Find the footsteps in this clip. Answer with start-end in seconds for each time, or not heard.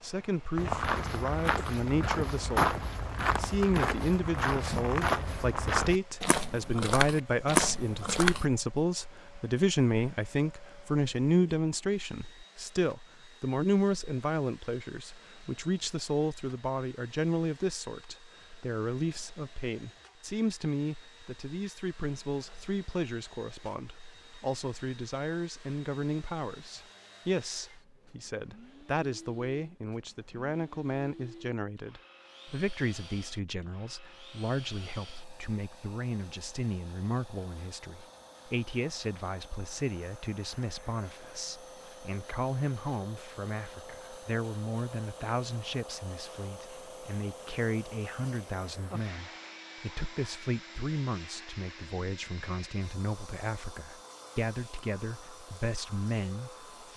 0.6-8.4.